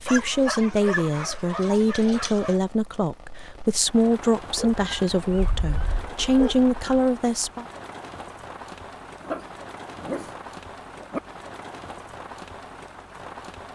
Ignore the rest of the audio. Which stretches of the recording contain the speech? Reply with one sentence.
The speech can be heard from 0.0 to 7.7 s.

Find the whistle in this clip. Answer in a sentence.
You can't hear the whistle here.